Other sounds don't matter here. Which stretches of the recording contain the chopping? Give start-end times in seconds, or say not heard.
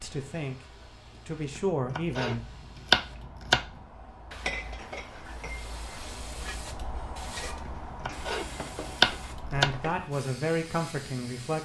1.6-3.6, 7.7-9.7.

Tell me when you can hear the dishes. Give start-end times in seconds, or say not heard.
4.3-10.1.